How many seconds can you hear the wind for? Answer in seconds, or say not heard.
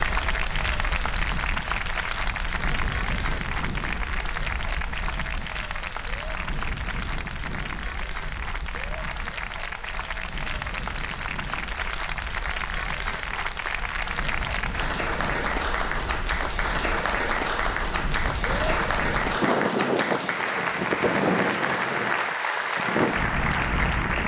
24 s.